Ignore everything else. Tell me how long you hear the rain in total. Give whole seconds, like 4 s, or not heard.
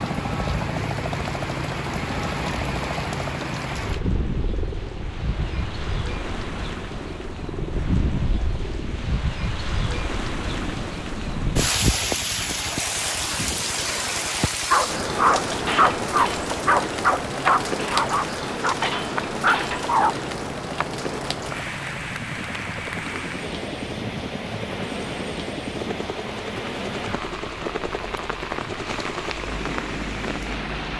31 s.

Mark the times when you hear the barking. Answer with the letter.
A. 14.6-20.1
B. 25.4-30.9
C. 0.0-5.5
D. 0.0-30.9
A.